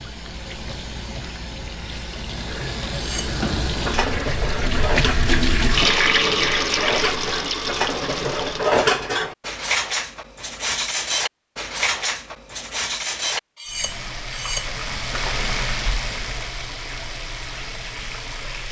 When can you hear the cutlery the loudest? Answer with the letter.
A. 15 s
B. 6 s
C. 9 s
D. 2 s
C.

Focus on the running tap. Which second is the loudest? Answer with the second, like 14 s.
6 s.